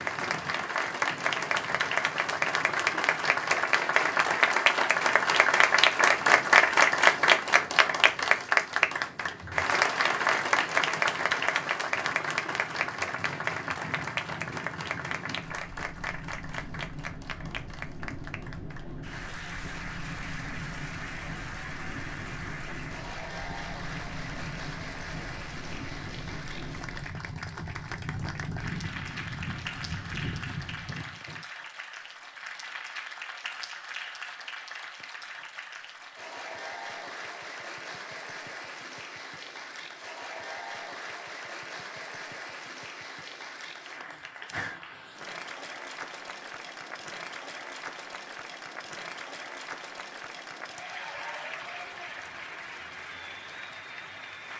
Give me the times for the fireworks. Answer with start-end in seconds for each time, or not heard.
not heard.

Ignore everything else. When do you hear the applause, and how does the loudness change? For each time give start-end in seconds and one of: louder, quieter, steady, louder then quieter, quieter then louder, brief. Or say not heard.
0.0-54.5 quieter.